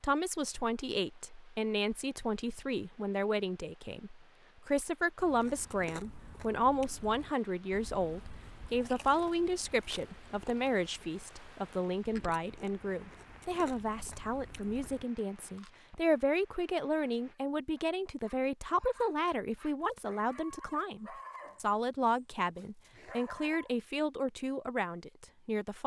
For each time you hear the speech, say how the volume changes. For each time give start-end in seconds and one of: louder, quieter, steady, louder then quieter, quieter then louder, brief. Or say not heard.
0.0-25.8 steady.